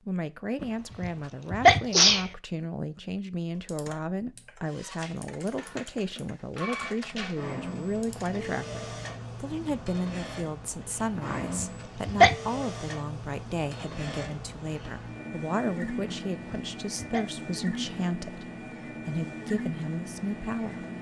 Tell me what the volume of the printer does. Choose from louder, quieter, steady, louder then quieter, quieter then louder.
steady.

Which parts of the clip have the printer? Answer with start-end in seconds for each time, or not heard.
4.7-20.9.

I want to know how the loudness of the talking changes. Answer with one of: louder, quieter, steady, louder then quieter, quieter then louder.
steady.